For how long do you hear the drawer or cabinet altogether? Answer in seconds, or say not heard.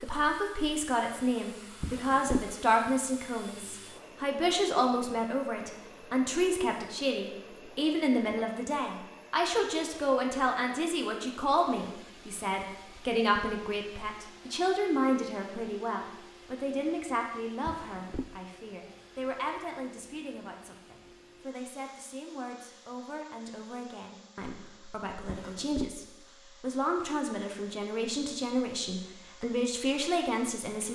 2 s.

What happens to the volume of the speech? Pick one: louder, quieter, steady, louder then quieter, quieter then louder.
quieter then louder.